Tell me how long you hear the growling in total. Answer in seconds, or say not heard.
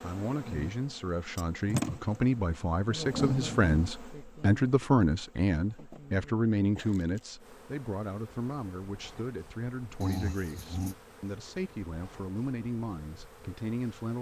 2 s.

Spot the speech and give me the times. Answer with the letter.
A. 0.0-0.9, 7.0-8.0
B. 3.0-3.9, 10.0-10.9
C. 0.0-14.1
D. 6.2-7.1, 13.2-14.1
C.